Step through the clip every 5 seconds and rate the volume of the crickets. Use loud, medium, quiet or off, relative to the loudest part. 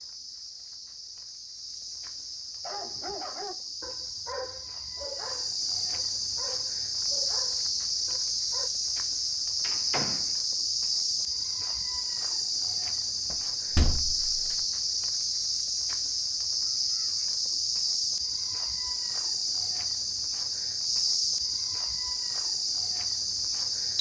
medium, loud, loud, loud, loud.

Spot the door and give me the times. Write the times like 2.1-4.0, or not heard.
9.6-10.3, 13.3-14.6.